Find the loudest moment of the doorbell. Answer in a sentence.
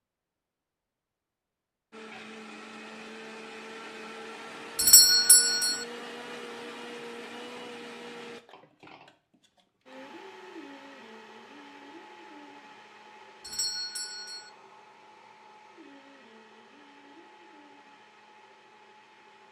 The volume of the doorbell peaks at 5 seconds.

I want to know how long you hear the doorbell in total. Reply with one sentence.
You can hear the doorbell for 2 seconds altogether.